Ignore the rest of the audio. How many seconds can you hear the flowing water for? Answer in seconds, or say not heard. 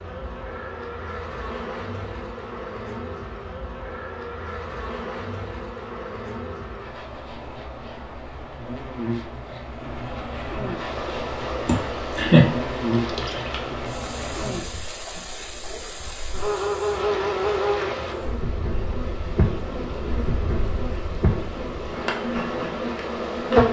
13 s.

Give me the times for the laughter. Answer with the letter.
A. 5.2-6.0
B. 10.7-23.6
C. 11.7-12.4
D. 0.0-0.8
C.